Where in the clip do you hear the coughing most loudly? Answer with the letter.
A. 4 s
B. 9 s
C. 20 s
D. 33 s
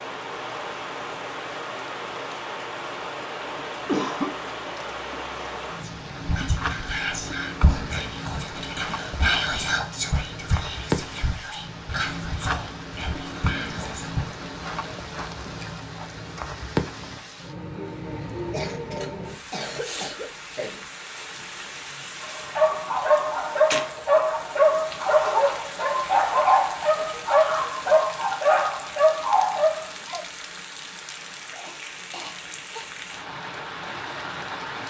A.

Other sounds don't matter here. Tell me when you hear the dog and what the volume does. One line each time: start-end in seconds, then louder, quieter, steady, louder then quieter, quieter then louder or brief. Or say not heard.
22.2-30.2 steady.